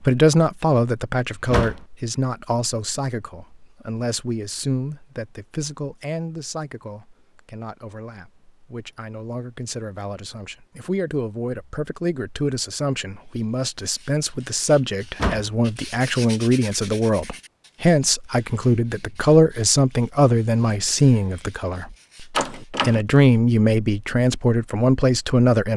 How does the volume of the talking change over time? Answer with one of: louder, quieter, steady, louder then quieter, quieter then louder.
quieter then louder.